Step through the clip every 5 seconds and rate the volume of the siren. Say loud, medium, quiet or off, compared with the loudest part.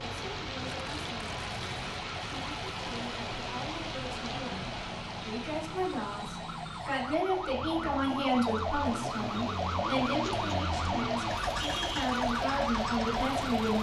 medium, loud, loud.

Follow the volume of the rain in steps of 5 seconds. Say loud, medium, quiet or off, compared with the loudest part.
loud, medium, loud.